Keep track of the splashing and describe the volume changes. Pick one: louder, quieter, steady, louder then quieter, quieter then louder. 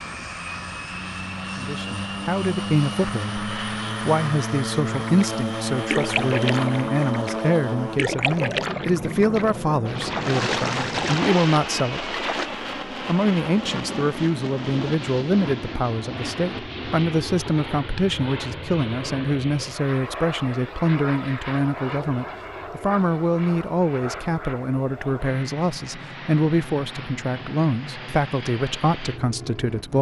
quieter then louder.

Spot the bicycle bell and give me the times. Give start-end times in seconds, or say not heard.
not heard.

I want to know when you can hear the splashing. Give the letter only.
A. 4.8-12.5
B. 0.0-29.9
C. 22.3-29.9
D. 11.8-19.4
A.